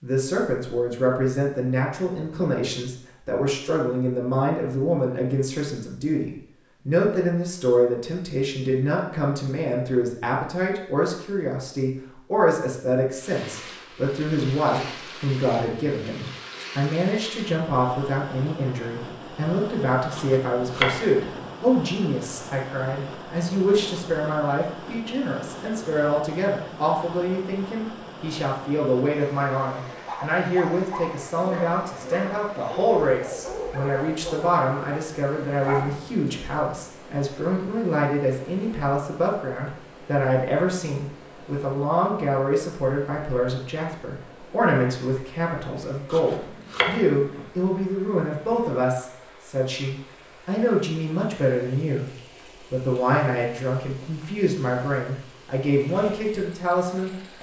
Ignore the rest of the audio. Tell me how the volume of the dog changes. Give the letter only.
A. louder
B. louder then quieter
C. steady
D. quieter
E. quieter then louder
C.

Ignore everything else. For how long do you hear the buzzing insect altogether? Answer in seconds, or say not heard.
not heard.